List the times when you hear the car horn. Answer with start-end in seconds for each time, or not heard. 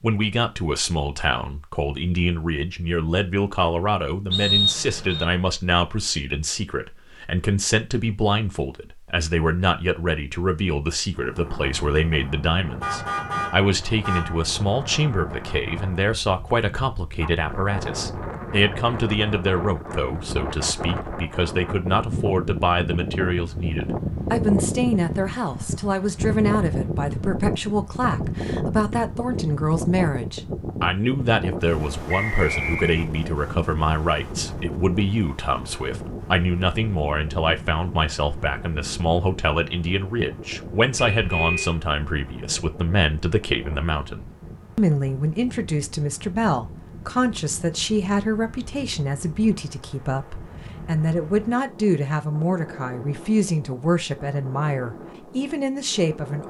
12.8-14.4, 41.0-41.8.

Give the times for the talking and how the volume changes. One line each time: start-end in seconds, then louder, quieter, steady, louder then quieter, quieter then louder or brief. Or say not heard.
0.0-56.4 steady.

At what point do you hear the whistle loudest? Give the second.
5 s.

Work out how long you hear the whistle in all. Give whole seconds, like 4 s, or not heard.
2 s.